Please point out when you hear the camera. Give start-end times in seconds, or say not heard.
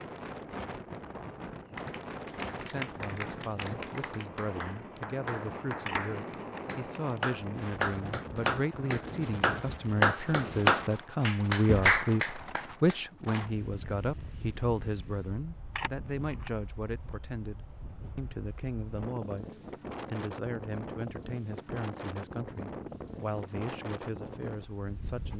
5.8-6.6, 15.8-16.5.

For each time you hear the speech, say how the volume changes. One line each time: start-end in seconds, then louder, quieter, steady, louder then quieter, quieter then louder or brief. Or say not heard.
2.5-25.3 louder then quieter.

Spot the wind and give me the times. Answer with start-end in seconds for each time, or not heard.
0.0-25.3.